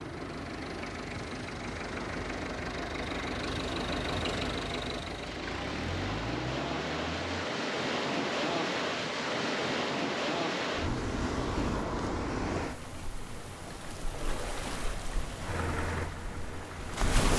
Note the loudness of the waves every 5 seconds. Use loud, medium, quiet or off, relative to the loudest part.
medium, loud, loud, loud.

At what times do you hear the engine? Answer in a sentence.
You can hear the engine from 0.0 to 7.5 s and from 15.4 to 17.1 s.